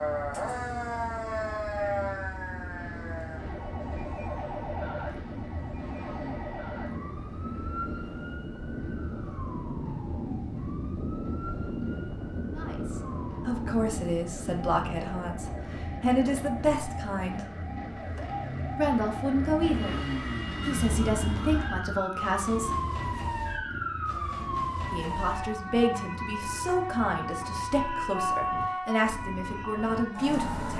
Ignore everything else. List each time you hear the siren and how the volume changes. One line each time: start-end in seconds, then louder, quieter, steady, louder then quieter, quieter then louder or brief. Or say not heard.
0.0-30.7 quieter then louder.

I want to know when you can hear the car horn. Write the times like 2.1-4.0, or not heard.
not heard.